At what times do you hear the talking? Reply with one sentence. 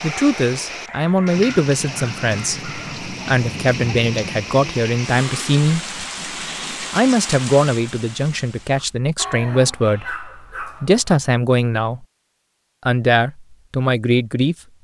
You can hear the talking from 0.0 to 5.8 s, from 6.8 to 12.1 s and from 12.8 to 14.6 s.